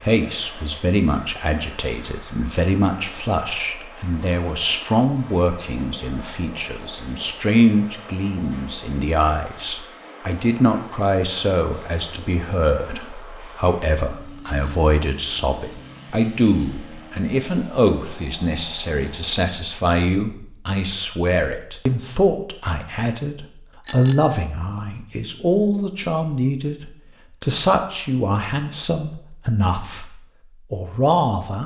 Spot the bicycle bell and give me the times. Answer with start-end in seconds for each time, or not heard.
6.6-7.2, 14.4-15.0, 23.9-24.4.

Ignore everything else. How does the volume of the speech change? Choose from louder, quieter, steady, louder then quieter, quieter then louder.
steady.